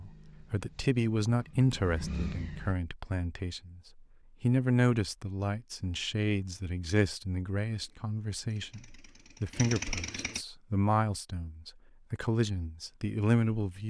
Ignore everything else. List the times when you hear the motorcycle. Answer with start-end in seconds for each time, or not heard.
0.0-2.8, 7.8-10.4.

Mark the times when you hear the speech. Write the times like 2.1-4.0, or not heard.
0.0-13.8.